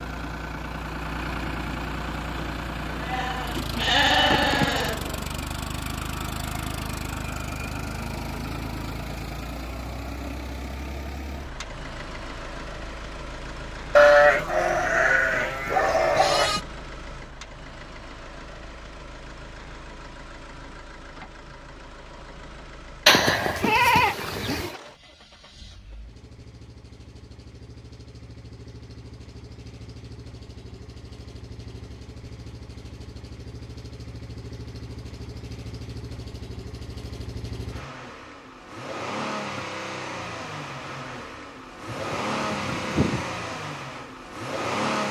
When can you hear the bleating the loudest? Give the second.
14 s.